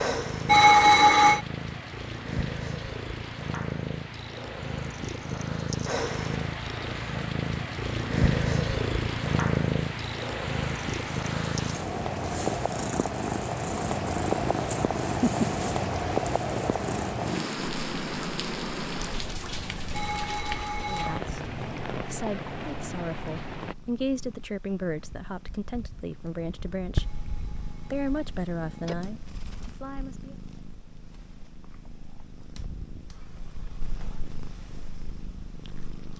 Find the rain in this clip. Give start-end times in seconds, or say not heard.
0.1-23.8.